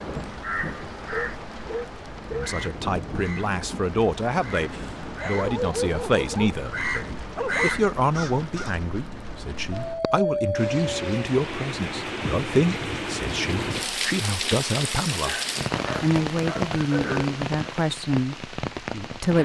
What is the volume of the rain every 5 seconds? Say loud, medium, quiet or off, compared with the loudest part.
medium, medium, loud, loud.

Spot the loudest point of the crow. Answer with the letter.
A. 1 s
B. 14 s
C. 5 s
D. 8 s
D.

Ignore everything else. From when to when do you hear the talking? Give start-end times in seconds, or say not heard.
2.3-15.3, 16.0-19.3.